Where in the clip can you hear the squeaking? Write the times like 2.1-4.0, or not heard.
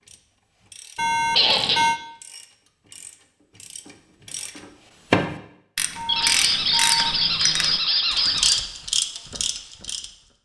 1.4-1.9, 6.0-8.6.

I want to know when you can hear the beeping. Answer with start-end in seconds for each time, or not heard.
0.9-2.0, 6.0-7.2.